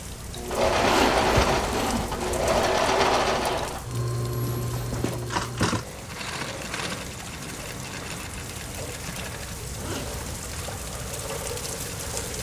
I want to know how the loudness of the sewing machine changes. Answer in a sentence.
The loudness of the sewing machine goes down.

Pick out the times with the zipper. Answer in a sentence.
You can hear the zipper from 0.7 to 2.6 s, from 4.2 to 5.2 s and from 9.6 to 10.4 s.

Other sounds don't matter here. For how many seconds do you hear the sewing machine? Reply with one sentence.
The sewing machine can be heard for 12 seconds in total.